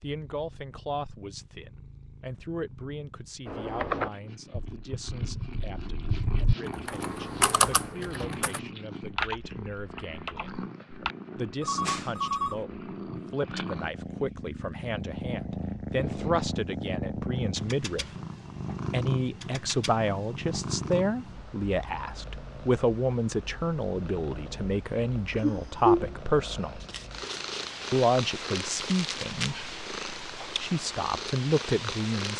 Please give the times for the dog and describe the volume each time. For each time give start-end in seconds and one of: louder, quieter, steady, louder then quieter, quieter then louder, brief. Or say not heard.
not heard.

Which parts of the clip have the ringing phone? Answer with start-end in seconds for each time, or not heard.
11.6-12.7.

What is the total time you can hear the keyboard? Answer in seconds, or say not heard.
8 s.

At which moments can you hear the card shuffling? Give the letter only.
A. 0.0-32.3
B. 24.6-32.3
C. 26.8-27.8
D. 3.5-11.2
C.